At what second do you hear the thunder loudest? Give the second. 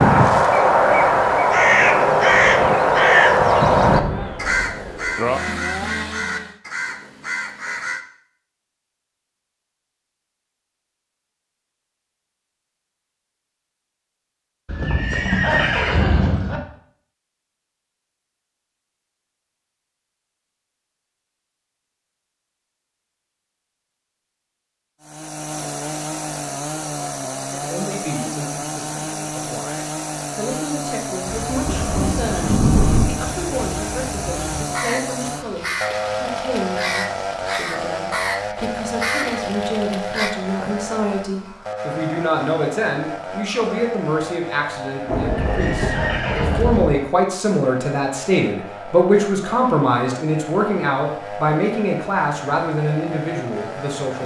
33 s.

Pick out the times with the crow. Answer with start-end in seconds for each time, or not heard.
0.0-8.1, 31.2-40.4.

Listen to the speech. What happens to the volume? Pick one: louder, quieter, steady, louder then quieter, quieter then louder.
louder.